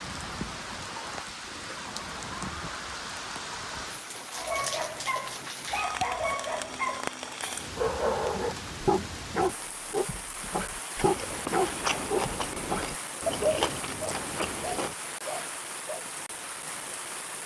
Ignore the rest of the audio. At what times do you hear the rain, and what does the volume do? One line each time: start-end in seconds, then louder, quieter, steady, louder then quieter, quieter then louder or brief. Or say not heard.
0.0-17.4 steady.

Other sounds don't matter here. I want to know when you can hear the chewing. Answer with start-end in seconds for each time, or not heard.
10.9-14.9.